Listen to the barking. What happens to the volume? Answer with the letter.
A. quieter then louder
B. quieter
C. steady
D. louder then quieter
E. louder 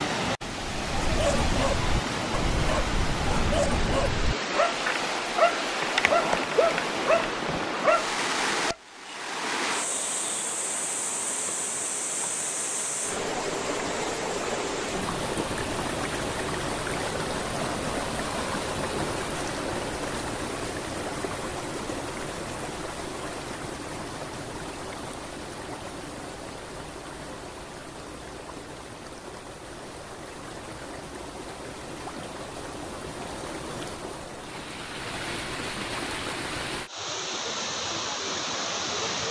C.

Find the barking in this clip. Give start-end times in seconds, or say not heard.
0.8-8.8.